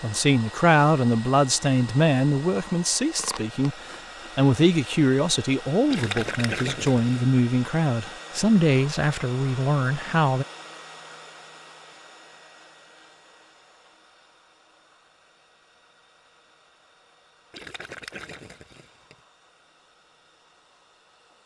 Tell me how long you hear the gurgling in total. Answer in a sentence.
The gurgling can be heard for 3 seconds in total.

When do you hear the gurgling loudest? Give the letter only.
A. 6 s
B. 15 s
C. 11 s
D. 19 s
A.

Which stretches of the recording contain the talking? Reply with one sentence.
The talking can be heard from 0.0 to 10.4 s.